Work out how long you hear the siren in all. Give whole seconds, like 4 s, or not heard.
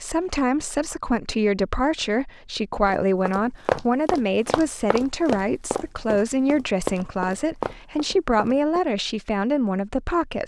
not heard.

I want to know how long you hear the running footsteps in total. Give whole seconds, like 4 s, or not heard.
6 s.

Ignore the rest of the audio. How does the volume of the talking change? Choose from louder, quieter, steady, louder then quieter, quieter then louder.
steady.